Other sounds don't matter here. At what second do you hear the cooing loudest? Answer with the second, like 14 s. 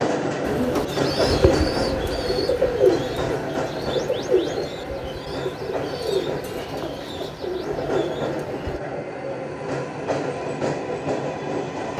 3 s.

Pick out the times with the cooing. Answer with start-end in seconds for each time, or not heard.
0.5-8.8.